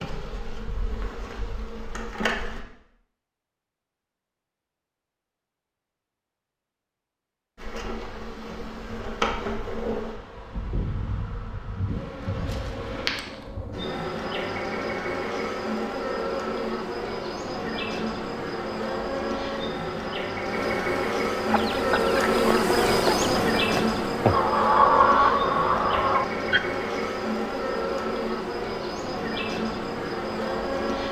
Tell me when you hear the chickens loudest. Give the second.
25 s.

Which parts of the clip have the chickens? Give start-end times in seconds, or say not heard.
21.4-26.6.